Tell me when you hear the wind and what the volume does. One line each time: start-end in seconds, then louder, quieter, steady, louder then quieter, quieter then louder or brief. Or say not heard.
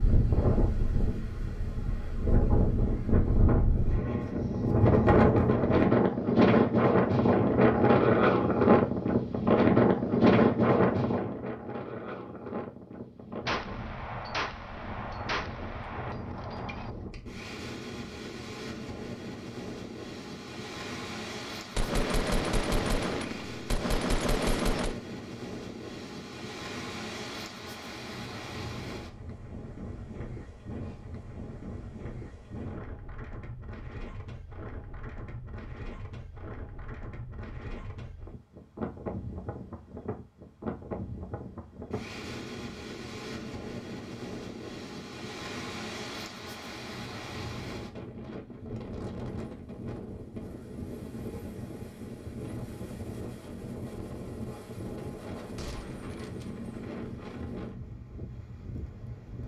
0.0-59.4 quieter.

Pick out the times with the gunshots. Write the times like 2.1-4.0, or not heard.
13.4-16.9, 21.8-24.9, 55.5-56.5.